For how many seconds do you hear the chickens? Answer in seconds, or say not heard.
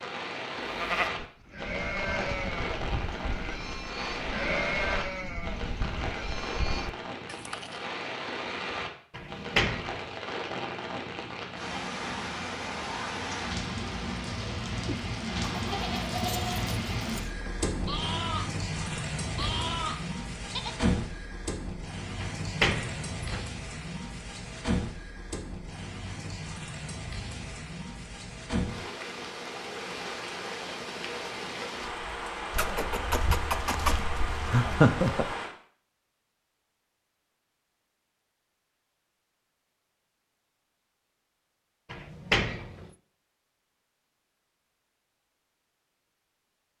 3 s.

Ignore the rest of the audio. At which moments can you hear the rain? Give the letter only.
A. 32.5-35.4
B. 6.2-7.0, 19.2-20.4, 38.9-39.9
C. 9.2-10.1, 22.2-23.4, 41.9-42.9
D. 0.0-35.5
D.